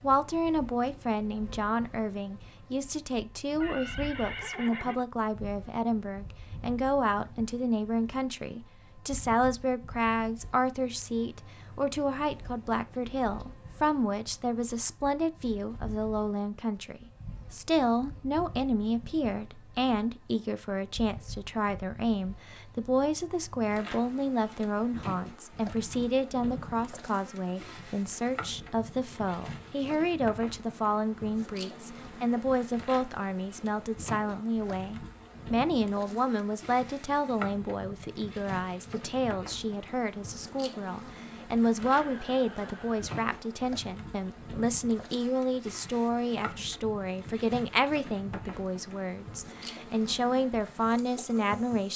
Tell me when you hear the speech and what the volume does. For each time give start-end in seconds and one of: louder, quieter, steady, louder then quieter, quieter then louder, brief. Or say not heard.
0.0-51.9 steady.